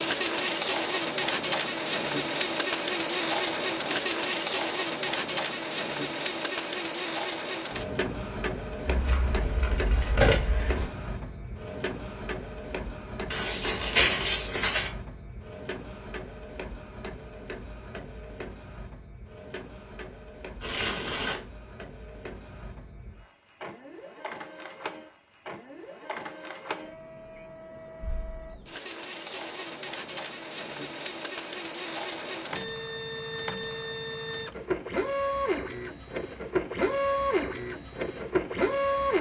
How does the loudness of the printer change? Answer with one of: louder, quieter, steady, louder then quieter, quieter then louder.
quieter then louder.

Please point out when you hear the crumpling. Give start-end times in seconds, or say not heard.
13.3-14.9, 20.6-21.4.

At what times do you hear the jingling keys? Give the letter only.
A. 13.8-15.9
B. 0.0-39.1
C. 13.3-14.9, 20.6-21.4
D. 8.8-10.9
D.